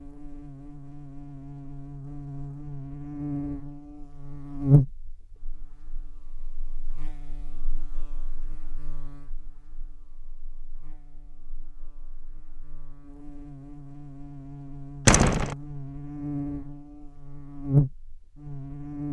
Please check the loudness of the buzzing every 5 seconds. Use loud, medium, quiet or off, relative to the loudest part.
loud, quiet, quiet, loud.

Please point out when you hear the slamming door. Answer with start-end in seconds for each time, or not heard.
15.1-15.6.